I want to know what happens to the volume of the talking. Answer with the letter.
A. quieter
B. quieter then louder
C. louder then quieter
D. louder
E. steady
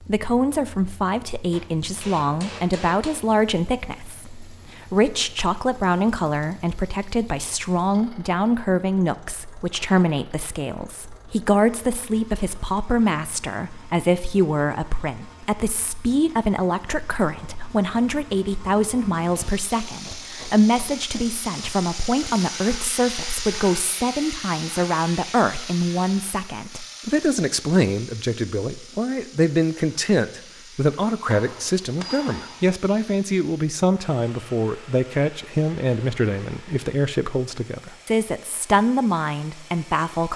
E.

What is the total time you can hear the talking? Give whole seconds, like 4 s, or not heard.
40 s.